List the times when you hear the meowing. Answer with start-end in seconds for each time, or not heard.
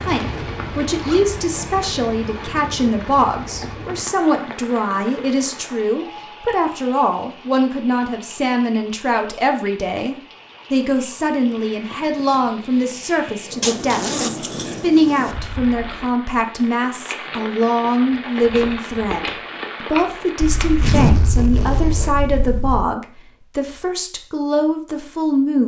not heard.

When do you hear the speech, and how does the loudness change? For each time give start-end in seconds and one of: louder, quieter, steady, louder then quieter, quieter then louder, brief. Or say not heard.
0.0-25.6 steady.